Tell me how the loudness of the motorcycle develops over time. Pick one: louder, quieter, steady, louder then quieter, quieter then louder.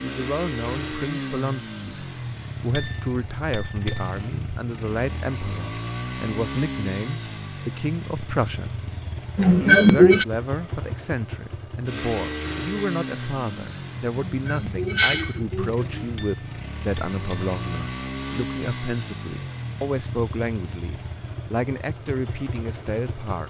steady.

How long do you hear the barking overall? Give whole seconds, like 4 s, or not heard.
not heard.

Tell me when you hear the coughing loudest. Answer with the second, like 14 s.
10 s.